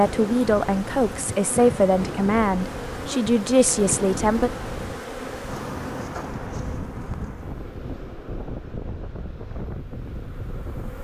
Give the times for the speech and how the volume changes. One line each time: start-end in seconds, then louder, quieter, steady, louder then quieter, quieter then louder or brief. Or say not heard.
0.0-4.5 steady.